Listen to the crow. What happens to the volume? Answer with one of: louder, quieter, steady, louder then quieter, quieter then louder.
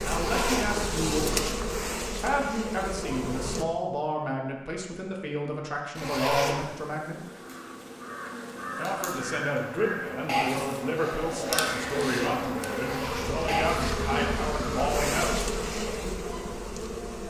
louder then quieter.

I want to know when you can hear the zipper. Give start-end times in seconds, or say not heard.
0.1-0.8, 6.0-6.7, 12.8-13.4.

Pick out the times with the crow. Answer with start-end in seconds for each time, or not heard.
7.2-13.9.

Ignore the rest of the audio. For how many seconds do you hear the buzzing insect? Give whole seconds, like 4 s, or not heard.
14 s.